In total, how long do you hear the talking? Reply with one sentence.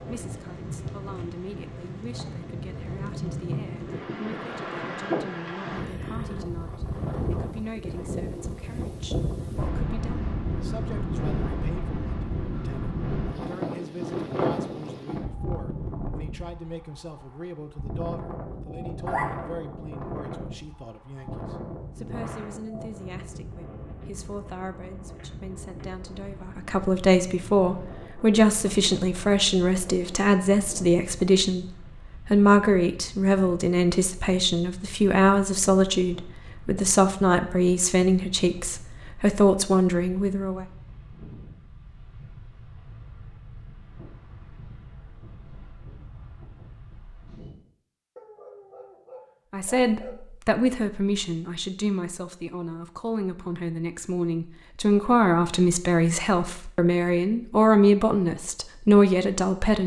You can hear the talking for 51 seconds altogether.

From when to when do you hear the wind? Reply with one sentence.
The wind can be heard from 0.0 to 47.5 s.